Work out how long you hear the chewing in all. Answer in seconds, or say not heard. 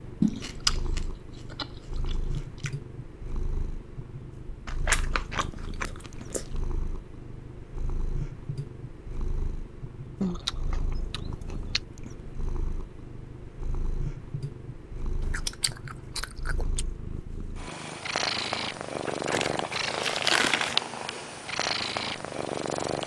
9 s.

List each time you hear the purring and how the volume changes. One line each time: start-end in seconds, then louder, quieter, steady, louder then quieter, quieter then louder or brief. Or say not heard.
0.0-23.0 louder.